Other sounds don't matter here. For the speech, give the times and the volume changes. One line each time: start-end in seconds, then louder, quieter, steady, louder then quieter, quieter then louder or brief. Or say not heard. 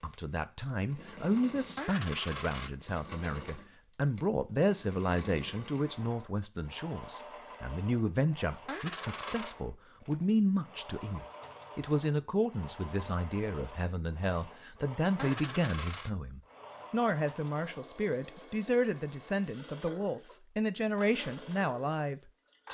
0.0-22.6 steady.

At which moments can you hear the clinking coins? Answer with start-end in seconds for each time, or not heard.
1.8-2.7, 8.7-9.6, 15.2-16.1.